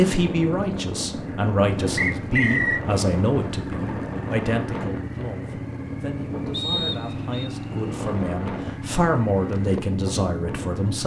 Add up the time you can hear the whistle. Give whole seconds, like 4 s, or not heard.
2 s.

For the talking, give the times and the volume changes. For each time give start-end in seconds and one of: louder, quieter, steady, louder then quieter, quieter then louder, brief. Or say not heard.
0.0-11.0 quieter then louder.